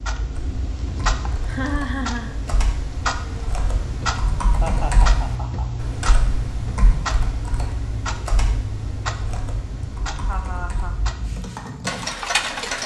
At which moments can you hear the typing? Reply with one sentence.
You can hear the typing from 0.3 to 12.1 s.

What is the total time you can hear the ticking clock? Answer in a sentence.
You can hear the ticking clock for 13 seconds altogether.